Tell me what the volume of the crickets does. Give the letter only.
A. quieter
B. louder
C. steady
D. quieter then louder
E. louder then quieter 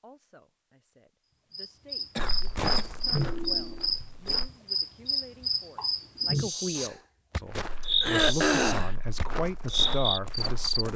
C.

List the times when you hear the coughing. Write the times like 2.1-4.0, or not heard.
2.1-2.9, 8.0-8.9.